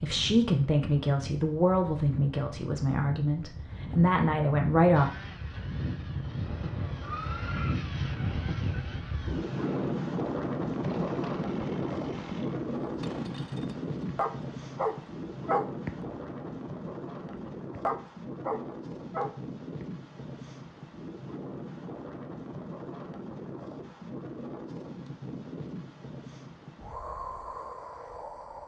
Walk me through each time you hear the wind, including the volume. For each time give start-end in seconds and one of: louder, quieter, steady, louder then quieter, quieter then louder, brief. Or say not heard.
0.0-28.6 louder then quieter.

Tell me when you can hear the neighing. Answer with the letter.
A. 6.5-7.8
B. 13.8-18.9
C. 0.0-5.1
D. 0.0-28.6
A.